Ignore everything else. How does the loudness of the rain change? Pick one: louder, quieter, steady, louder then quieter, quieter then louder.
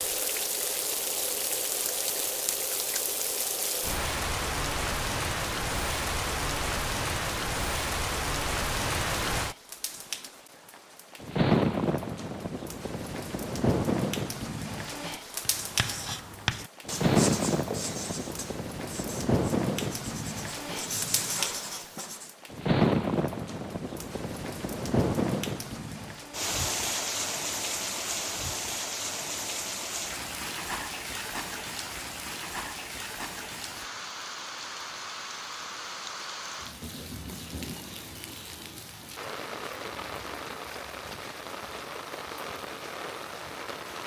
quieter.